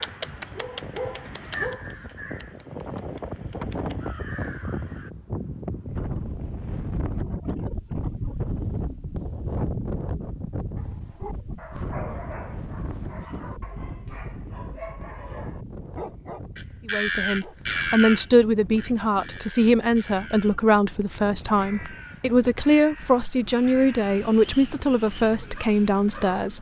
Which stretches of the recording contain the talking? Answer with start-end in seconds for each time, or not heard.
16.9-26.5.